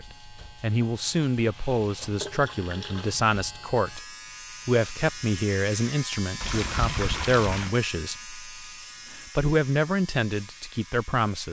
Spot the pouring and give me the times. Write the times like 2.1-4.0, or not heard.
2.2-3.2, 6.4-7.8.